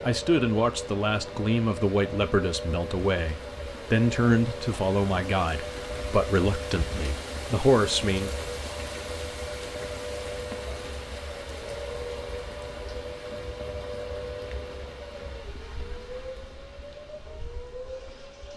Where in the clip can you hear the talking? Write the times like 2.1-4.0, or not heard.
0.0-8.3.